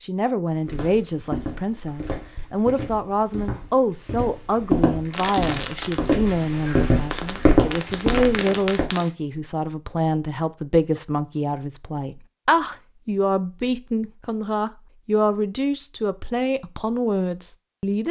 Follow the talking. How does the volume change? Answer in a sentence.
The volume of the talking stays about the same.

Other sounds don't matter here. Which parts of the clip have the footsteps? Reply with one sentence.
The footsteps can be heard from 0.5 to 8.9 s.